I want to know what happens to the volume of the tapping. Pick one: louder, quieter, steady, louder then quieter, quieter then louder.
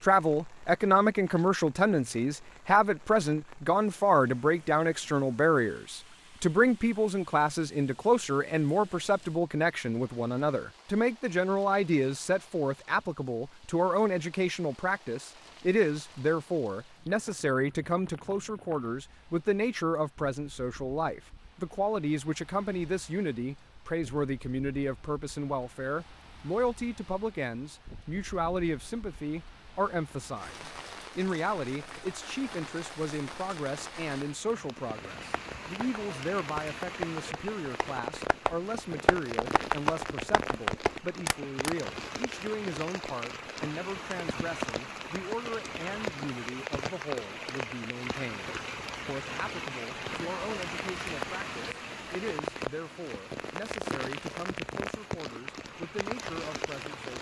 louder.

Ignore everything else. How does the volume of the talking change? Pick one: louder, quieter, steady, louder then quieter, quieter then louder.
quieter.